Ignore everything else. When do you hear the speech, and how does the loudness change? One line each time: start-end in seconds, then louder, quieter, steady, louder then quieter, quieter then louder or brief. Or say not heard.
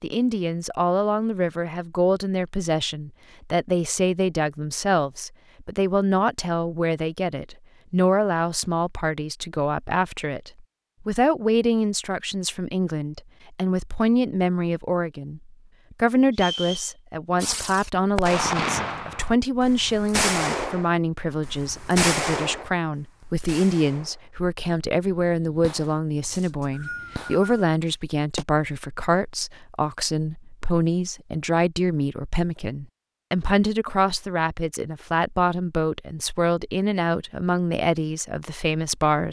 0.0-39.2 steady.